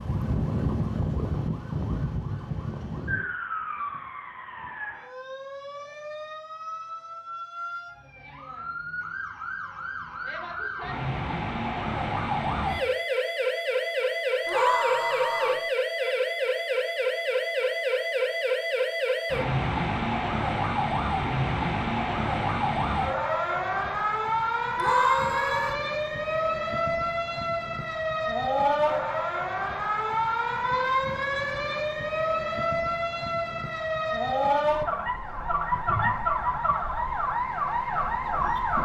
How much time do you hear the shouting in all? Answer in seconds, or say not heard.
2 s.